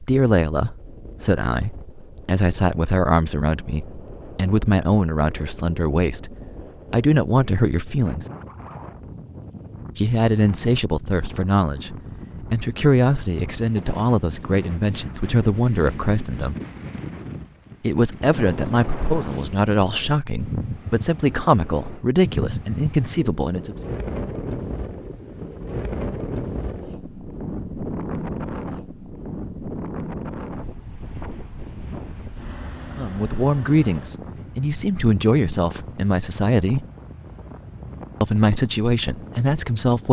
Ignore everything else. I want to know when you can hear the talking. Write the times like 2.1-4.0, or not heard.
0.0-8.2, 9.9-16.6, 17.8-23.8, 33.0-36.9, 38.2-40.0.